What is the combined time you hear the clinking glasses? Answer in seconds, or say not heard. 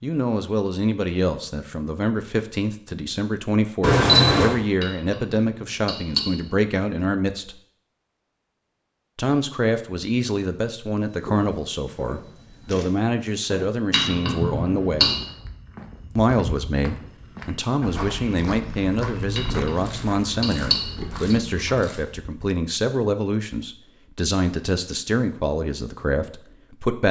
5 s.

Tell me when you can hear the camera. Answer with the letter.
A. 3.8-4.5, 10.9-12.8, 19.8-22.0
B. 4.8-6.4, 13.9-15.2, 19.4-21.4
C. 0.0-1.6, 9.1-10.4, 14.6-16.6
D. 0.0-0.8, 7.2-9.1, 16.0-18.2
A.